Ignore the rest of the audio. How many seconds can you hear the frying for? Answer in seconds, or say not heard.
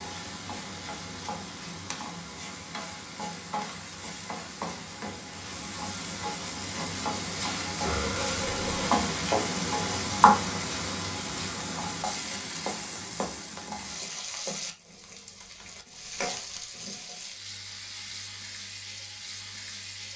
20 s.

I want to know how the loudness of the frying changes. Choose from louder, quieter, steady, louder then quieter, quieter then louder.
louder then quieter.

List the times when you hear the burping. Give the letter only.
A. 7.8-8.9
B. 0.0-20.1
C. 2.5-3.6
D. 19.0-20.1
A.